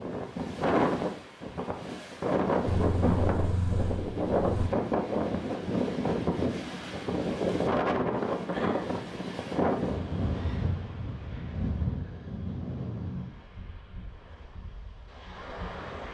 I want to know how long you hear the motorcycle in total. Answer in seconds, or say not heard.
2 s.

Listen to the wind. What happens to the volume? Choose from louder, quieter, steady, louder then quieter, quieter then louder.
quieter.